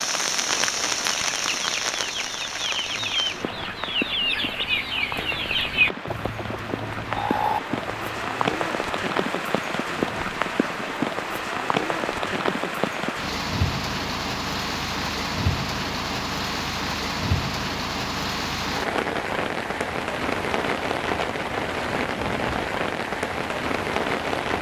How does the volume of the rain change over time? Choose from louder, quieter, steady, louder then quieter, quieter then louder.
steady.